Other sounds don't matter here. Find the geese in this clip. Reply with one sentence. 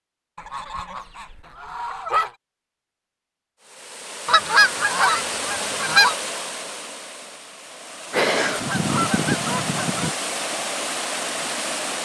The geese can be heard from 0.3 to 2.3 s, from 4.2 to 6.2 s and from 8.1 to 10.2 s.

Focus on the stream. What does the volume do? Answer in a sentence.
The volume of the stream goes down, then up.